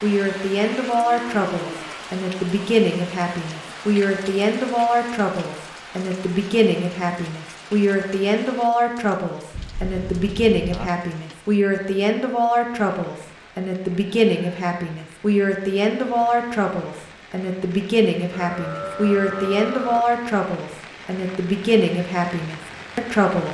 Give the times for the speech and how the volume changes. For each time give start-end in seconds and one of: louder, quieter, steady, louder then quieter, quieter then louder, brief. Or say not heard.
0.0-23.4 steady.